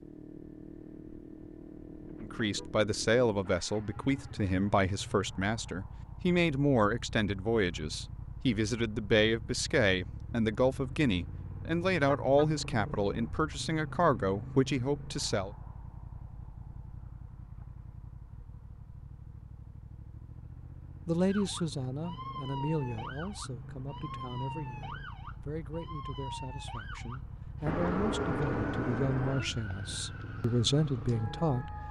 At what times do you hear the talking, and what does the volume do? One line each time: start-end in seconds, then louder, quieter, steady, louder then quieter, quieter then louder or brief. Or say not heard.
2.2-15.5 steady
21.1-31.8 quieter then louder.